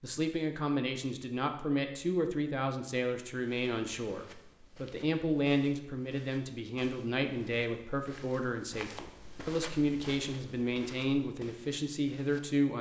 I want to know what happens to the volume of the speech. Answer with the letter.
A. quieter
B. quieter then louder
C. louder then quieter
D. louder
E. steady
E.